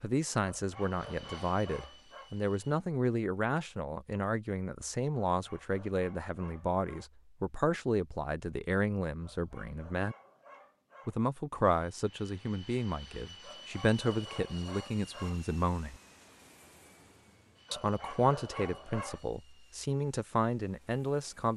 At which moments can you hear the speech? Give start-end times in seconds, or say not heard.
0.0-10.2, 11.1-15.9, 17.7-21.5.